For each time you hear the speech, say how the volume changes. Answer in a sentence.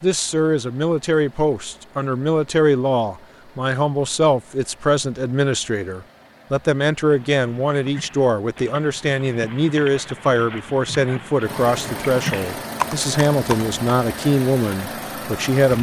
The speech can be heard from 0.0 to 15.7 s, at a steady volume.